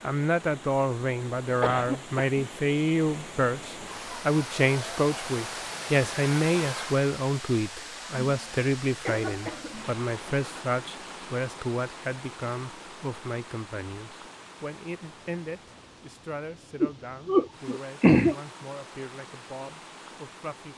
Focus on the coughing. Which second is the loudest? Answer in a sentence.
The volume of the coughing peaks at 18 seconds.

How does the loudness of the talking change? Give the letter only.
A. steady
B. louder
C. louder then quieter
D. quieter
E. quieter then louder
D.